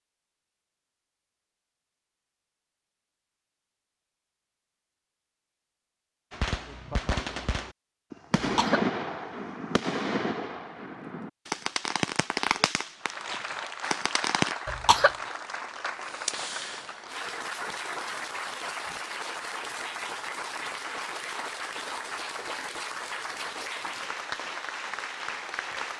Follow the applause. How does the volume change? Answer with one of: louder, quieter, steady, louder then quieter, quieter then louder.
steady.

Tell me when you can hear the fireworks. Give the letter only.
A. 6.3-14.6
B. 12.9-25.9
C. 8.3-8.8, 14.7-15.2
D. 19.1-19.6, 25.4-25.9
A.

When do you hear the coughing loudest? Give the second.
15 s.